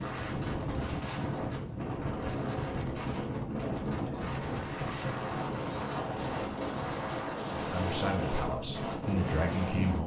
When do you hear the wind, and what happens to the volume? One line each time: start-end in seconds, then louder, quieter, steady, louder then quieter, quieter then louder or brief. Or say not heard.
0.0-10.0 steady.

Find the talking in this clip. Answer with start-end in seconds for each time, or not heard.
7.5-10.0.